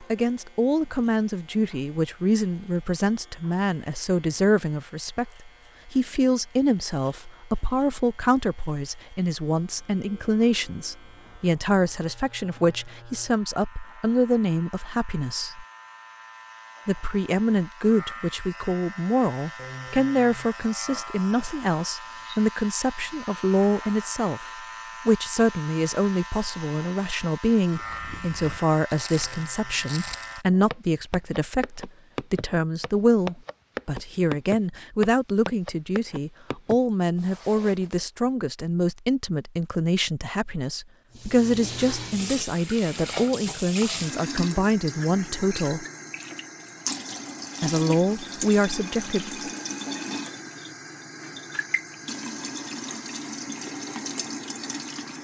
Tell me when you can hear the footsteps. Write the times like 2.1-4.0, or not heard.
27.8-38.0.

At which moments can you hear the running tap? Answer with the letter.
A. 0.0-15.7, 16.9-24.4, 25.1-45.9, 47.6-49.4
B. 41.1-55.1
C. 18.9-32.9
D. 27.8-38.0
B.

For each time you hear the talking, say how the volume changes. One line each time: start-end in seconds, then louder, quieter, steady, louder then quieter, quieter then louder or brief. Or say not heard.
0.0-15.7 steady
16.9-24.4 steady
25.1-45.9 steady
47.6-49.4 brief.